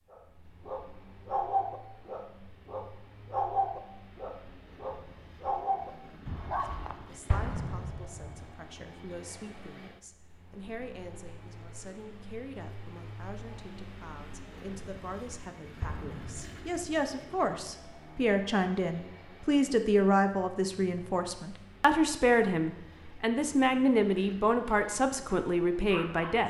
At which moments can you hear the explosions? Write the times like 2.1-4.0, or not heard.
7.3-8.4, 15.8-16.8.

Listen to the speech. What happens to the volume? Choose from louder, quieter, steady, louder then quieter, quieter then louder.
louder.